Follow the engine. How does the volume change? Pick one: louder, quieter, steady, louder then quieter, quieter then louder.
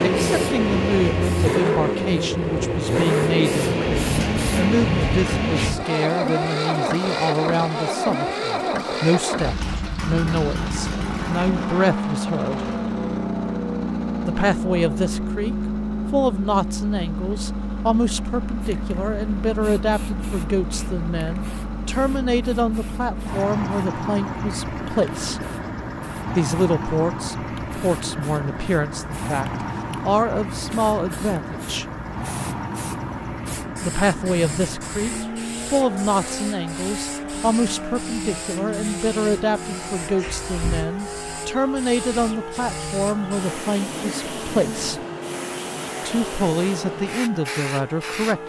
quieter.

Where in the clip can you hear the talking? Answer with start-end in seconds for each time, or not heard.
0.0-12.6, 14.2-25.4, 26.4-31.9, 33.8-45.0, 46.0-48.4.